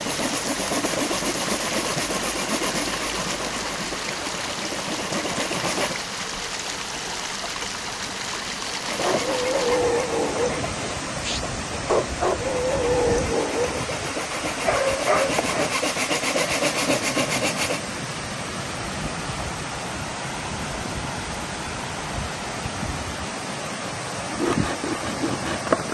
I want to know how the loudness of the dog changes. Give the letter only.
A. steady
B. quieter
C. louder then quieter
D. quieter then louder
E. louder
D.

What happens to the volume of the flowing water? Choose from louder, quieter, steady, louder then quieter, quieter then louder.
steady.